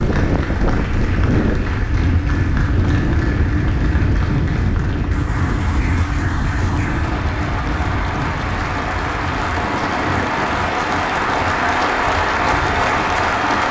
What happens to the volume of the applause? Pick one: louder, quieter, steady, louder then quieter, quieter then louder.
louder.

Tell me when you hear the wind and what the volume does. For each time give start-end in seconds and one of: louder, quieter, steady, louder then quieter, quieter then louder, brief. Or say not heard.
0.0-13.6 quieter.